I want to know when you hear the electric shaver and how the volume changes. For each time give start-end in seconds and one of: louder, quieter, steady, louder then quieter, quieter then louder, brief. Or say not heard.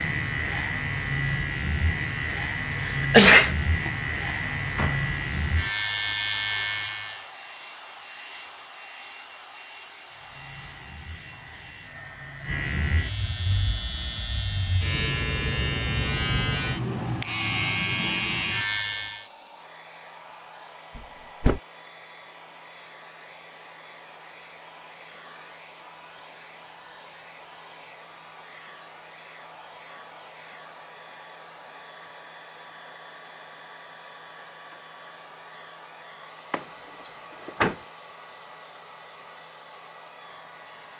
0.0-7.2 steady
10.1-19.2 louder.